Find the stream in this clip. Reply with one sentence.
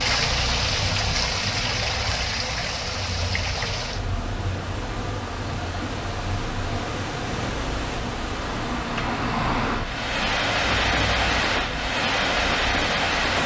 The stream can be heard from 0.0 to 13.4 s.